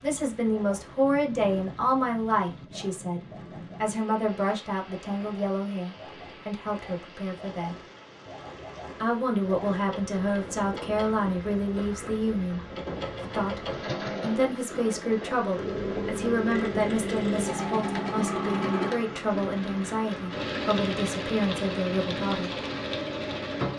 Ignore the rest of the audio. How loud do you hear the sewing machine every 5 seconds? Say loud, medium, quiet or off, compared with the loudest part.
quiet, quiet, medium, loud, loud.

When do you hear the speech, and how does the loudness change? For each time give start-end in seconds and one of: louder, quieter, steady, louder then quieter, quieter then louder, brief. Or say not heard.
0.0-7.8 quieter
9.0-22.6 steady.